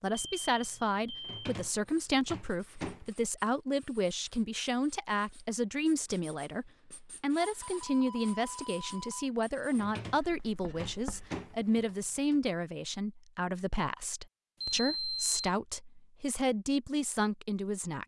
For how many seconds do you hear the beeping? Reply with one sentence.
You can hear the beeping for 4 seconds altogether.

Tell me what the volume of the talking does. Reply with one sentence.
The volume of the talking stays about the same.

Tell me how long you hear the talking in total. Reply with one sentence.
The talking can be heard for 18 seconds in total.